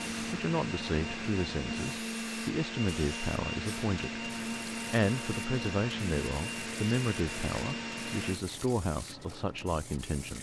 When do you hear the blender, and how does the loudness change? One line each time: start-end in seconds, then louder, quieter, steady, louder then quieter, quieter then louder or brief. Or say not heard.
0.0-8.4 steady.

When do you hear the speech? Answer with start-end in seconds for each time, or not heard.
0.2-10.3.